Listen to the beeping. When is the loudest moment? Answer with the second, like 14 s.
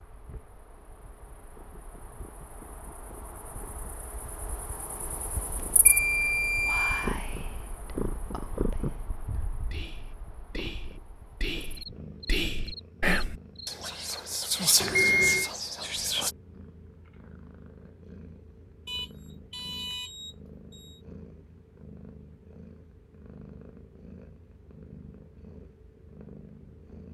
15 s.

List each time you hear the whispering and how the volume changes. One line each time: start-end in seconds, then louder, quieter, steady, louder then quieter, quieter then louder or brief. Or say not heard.
6.2-16.4 quieter then louder.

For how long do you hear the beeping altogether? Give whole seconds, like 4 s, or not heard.
4 s.